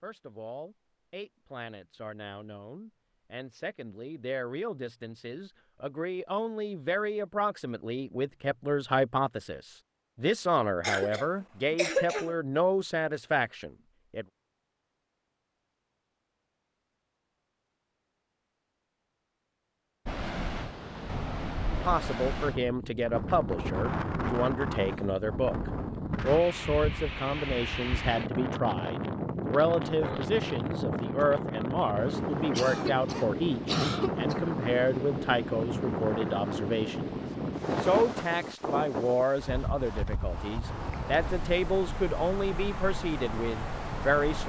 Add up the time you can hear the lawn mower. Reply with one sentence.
You can't hear the lawn mower here.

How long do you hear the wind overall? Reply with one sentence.
The wind can be heard for 24 seconds in total.